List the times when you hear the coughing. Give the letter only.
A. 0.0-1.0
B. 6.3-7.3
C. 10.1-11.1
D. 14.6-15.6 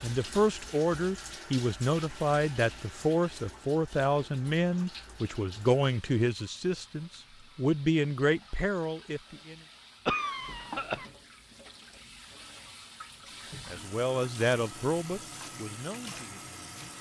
C.